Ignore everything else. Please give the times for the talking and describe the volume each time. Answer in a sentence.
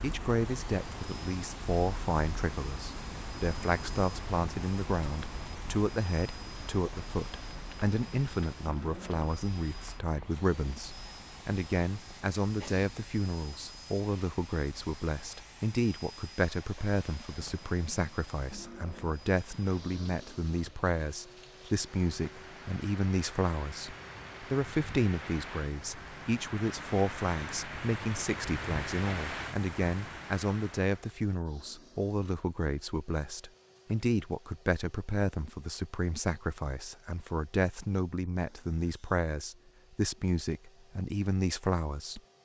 You can hear the talking from 0.0 to 42.2 s, at a steady volume.